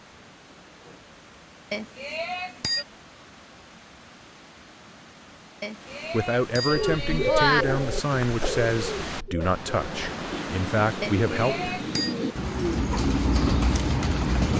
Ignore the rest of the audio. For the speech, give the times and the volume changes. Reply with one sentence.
The speech can be heard from 6.1 to 11.7 s, at a steady volume.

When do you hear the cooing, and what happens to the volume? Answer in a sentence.
The cooing can be heard from 6.7 to 14.5 s, getting quieter then louder.